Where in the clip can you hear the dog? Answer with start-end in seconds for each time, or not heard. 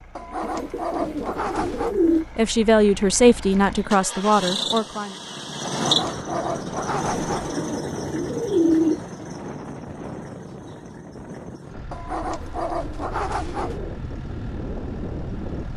0.1-1.9, 5.7-7.5, 11.9-13.8.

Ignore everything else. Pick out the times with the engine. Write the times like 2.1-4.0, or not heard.
0.0-15.7.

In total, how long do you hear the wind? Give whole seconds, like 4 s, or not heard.
10 s.